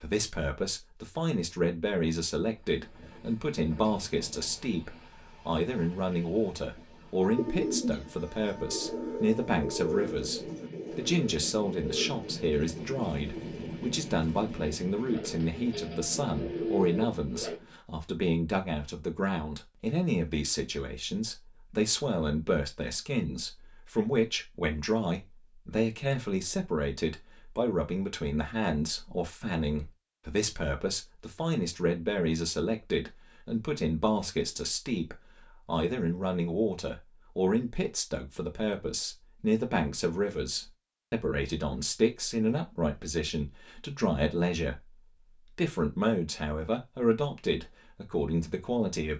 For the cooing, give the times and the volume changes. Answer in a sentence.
The cooing can be heard from 7.3 to 17.6 s, getting quieter then louder.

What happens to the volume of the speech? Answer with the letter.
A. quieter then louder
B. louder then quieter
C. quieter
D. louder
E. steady
E.